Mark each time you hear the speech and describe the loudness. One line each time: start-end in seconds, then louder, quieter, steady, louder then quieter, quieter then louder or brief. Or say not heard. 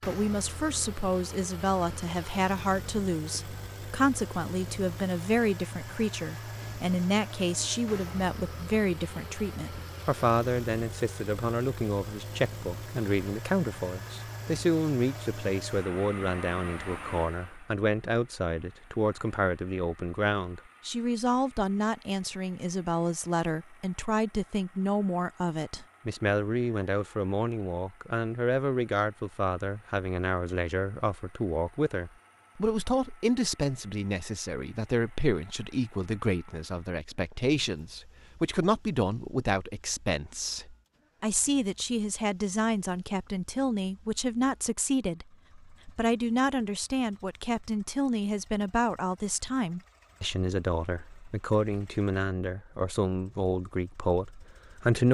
0.1-55.0 steady.